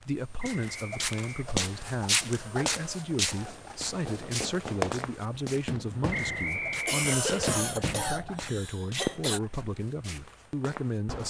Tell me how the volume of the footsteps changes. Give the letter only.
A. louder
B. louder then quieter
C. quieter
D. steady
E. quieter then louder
C.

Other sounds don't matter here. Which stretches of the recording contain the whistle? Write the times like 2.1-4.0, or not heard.
0.3-1.9, 6.1-7.7.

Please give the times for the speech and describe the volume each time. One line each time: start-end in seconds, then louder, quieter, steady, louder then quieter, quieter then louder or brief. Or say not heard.
0.0-11.2 steady.